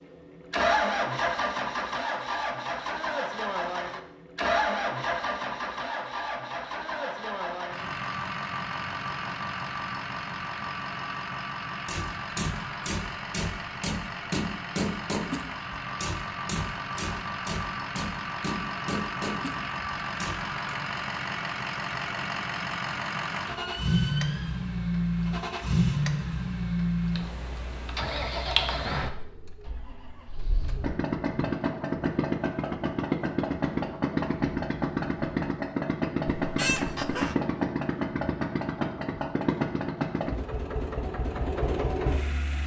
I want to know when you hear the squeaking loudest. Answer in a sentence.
The loudest moment of the squeaking is at 37 seconds.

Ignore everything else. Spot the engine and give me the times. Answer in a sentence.
The engine can be heard from 0.0 to 42.6 s.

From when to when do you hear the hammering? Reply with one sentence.
The hammering can be heard from 11.8 to 20.8 s.